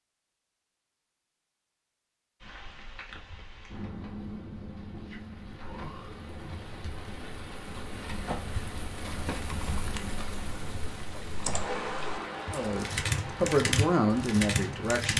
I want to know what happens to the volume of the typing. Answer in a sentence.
The volume of the typing goes down, then up.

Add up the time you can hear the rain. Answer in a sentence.
You can hear the rain for 13 seconds altogether.